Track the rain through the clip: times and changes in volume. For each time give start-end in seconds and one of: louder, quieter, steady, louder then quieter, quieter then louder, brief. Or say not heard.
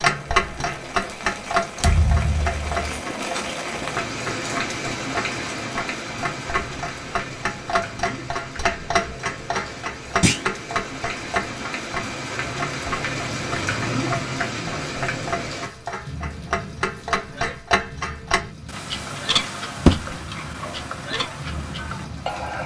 0.0-22.6 quieter.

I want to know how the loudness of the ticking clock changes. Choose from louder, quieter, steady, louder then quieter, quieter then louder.
steady.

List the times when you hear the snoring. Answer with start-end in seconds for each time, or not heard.
not heard.